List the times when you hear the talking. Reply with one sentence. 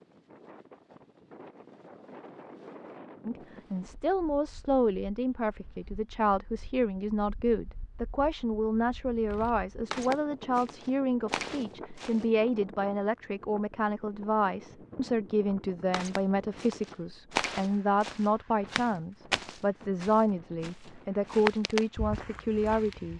The talking can be heard from 3.2 to 23.1 s.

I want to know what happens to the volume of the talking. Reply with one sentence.
The volume of the talking stays about the same.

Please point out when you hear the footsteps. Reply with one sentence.
The footsteps can be heard from 9.3 to 12.2 s and from 15.9 to 23.1 s.